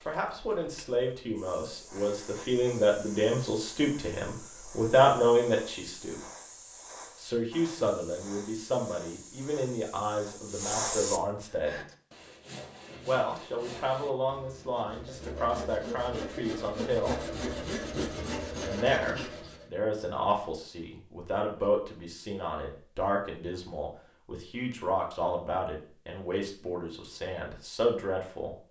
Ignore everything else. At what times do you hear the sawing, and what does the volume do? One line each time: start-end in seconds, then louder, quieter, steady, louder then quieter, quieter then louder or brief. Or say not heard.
11.4-19.7 louder.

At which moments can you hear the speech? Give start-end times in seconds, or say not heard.
0.1-6.2, 7.2-11.8, 13.1-17.2, 18.6-28.6.